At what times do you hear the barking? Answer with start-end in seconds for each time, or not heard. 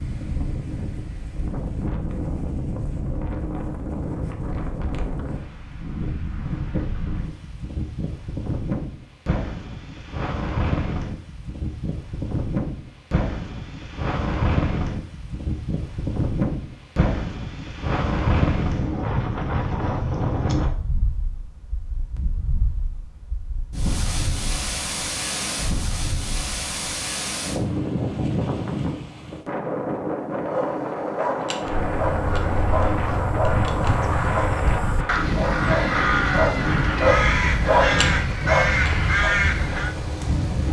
30.4-39.4.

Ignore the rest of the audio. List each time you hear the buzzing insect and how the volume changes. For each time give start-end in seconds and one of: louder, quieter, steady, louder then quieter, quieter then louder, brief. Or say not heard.
not heard.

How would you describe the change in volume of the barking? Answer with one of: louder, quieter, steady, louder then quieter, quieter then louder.
louder.